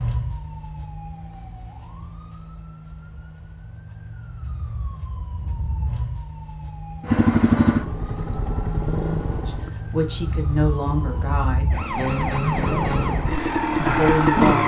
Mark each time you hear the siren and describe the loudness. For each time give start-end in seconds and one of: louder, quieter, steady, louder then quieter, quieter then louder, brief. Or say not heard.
0.0-13.3 louder.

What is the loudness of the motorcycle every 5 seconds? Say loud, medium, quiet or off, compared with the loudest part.
off, loud, loud.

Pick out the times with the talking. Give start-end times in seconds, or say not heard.
9.4-11.7, 13.8-14.6.